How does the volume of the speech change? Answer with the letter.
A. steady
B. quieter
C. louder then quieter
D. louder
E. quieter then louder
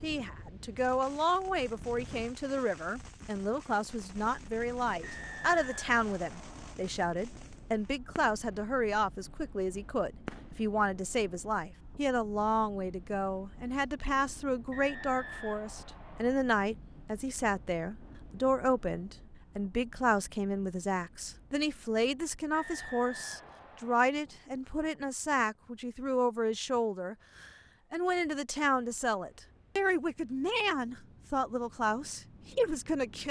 A.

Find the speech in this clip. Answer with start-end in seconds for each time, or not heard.
0.0-33.2.